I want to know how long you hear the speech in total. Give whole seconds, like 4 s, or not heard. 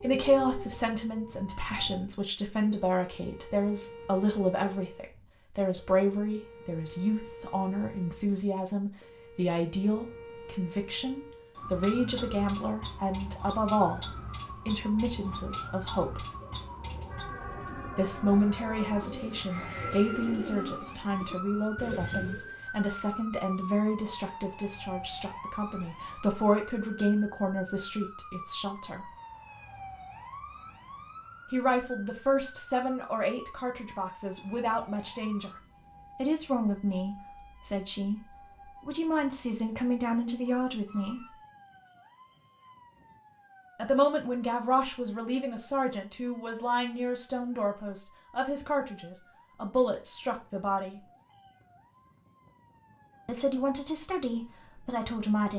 46 s.